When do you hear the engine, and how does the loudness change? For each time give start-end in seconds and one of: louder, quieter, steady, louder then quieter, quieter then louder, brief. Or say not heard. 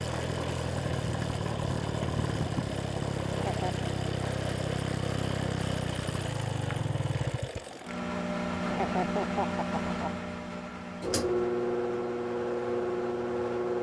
0.0-13.7 steady.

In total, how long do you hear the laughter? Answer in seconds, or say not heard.
2 s.